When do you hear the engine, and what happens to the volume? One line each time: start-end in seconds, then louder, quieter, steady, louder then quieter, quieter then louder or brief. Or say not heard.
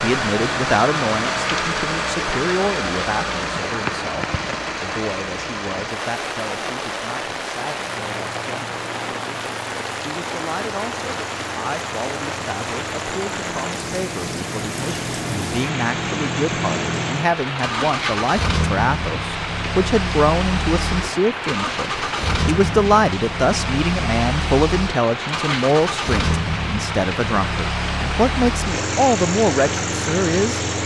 0.0-30.8 quieter then louder.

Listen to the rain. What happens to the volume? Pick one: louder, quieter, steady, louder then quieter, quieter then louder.
steady.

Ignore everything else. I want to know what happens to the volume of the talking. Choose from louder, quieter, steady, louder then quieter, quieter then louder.
quieter then louder.